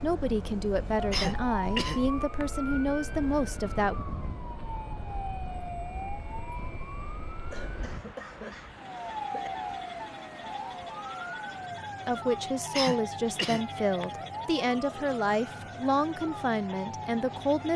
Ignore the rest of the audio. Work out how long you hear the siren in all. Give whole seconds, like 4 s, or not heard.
18 s.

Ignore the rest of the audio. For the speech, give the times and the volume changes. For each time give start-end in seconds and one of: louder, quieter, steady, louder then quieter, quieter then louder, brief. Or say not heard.
0.0-4.0 steady
12.1-17.7 steady.